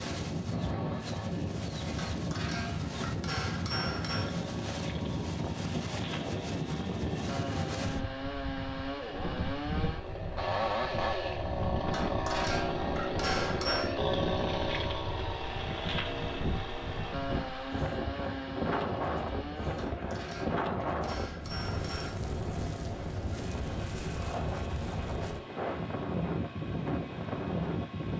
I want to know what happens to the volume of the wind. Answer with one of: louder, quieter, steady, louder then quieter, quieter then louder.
steady.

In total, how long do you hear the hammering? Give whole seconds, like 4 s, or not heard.
7 s.